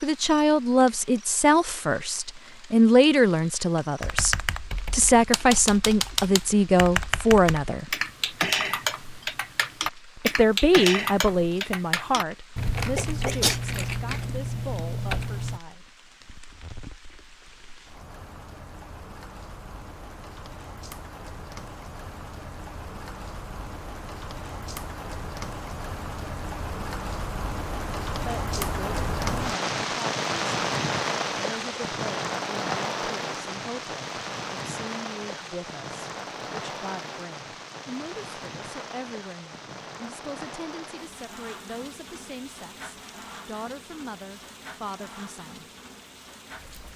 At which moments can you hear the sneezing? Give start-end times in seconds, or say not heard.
12.9-13.6.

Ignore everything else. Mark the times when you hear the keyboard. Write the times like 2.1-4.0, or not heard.
4.0-15.6.